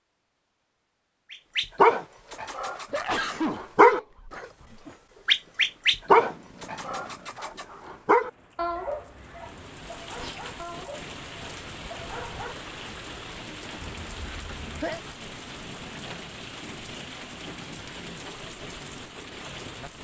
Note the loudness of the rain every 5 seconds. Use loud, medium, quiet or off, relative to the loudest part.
off, medium, loud, loud.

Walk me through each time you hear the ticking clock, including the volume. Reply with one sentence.
The ticking clock can't be heard in this clip.